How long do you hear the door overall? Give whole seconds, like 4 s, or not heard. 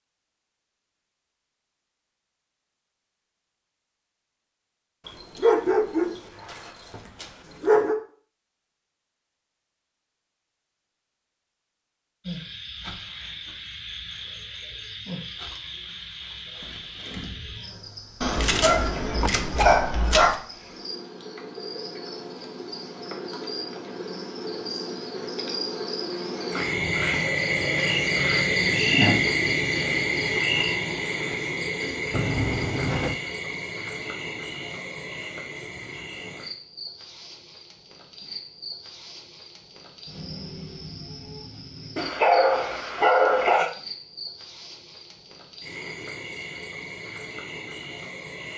2 s.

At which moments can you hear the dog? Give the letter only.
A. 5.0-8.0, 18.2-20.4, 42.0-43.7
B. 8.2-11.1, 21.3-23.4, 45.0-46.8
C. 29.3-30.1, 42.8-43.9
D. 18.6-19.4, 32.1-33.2
A.